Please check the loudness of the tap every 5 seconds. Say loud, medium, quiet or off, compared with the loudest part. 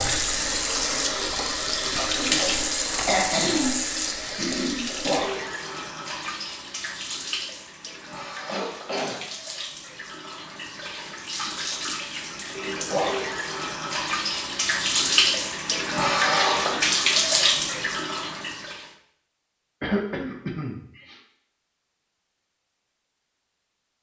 loud, medium, medium, loud, off.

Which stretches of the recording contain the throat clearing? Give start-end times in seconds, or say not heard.
3.0-3.8, 4.3-4.9, 8.4-9.3, 19.8-21.1.